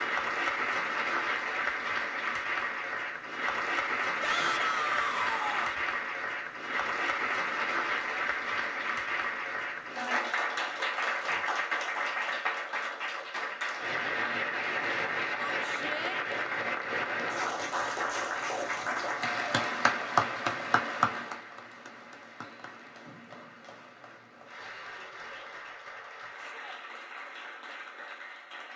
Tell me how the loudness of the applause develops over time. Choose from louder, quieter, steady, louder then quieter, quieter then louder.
quieter.